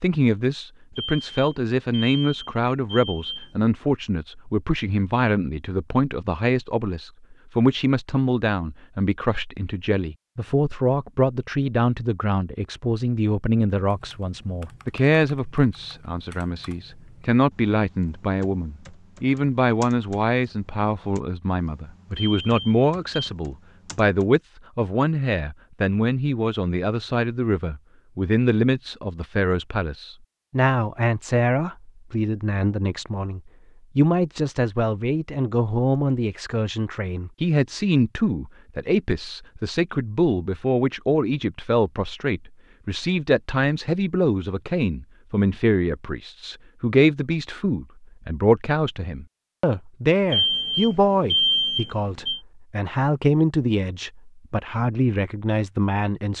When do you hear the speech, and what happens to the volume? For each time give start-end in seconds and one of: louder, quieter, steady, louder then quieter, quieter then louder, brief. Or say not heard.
0.0-56.3 steady.